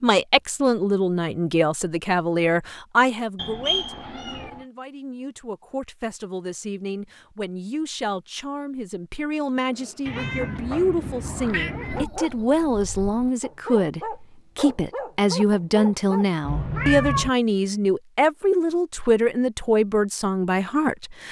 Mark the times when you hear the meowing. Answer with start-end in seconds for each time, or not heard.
3.4-4.6, 10.1-12.1, 16.4-17.3.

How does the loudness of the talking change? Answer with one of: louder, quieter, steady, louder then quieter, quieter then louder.
quieter then louder.